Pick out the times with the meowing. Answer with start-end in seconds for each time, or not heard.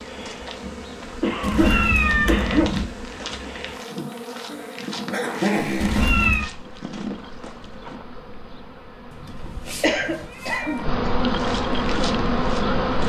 1.4-2.9, 5.8-6.5, 9.1-10.9.